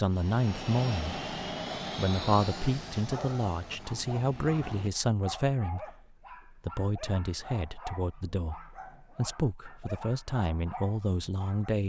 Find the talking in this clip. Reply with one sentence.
The talking can be heard from 0.0 to 1.1 s and from 1.9 to 11.8 s.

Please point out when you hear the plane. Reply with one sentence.
The plane can be heard from 0.0 to 4.9 s.